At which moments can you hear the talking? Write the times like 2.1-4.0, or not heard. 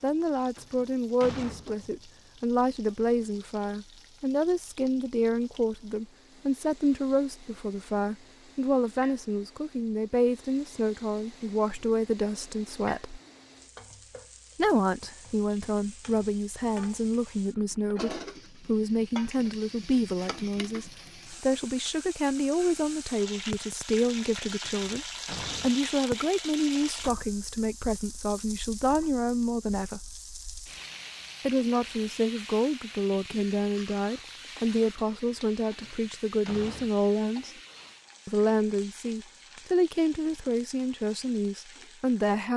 0.0-13.2, 14.6-30.1, 31.4-37.5, 38.2-42.5.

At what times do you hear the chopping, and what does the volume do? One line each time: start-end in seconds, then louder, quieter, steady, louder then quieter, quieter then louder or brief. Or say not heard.
not heard.